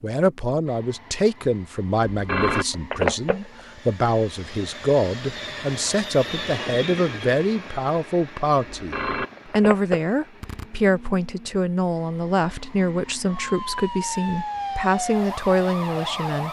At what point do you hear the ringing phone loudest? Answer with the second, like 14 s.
3 s.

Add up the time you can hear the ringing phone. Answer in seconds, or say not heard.
3 s.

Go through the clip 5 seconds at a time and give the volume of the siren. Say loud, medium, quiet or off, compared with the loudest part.
off, off, loud, loud.